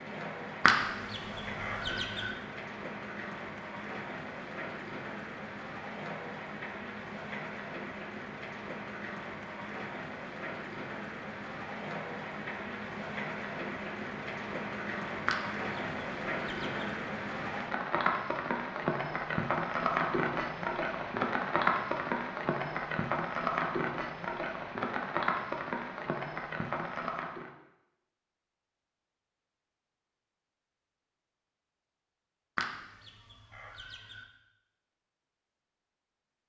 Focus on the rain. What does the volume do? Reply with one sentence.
The volume of the rain goes up.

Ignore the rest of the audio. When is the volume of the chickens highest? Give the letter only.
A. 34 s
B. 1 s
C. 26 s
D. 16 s
B.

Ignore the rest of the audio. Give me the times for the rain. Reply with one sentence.
The rain can be heard from 0.0 to 27.5 s.